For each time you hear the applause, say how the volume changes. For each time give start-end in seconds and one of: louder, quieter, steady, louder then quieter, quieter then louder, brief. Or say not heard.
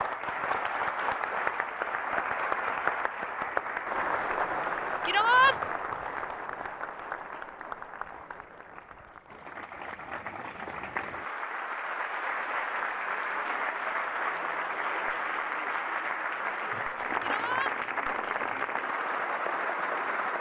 0.0-20.3 quieter then louder.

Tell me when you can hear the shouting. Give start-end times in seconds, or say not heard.
5.0-5.5, 17.2-17.8.